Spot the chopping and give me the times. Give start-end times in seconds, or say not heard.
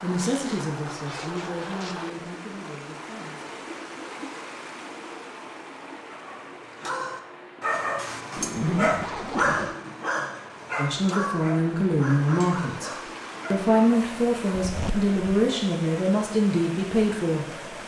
not heard.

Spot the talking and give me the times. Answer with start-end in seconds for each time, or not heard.
0.0-3.5, 10.8-12.9, 13.5-17.7.